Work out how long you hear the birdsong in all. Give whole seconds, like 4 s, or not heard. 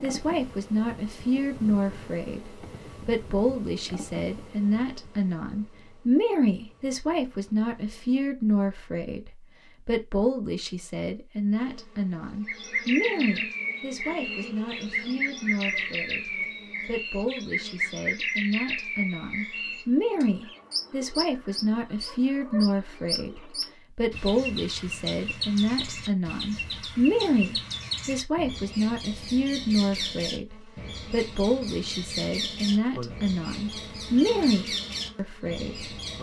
24 s.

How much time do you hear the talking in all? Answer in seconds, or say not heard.
36 s.